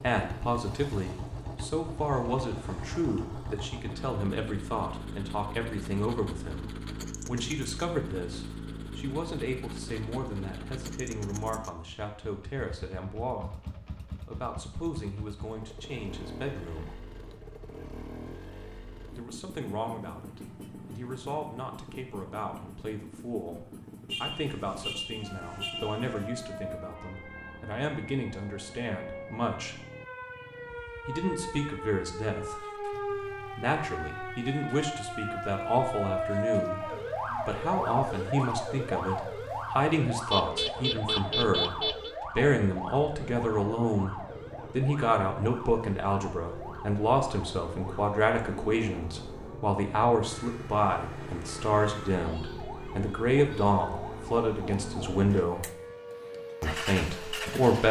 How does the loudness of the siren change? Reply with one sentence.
The loudness of the siren goes up, then down.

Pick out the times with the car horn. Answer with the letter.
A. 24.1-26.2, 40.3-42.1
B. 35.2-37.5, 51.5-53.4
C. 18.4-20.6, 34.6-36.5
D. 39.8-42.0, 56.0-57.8
A.